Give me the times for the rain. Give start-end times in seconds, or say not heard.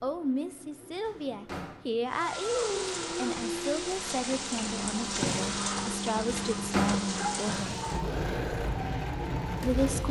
2.1-10.0.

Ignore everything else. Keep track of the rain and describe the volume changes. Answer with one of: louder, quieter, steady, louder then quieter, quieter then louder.
steady.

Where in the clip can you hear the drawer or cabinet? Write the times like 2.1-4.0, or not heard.
1.1-1.9, 6.2-7.0.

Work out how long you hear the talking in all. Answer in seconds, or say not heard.
8 s.